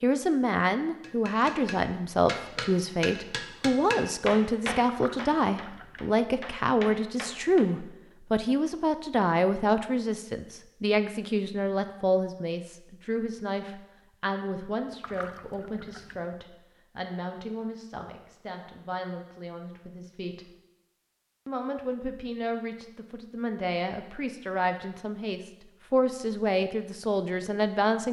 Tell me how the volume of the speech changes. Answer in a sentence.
The loudness of the speech goes down, then up.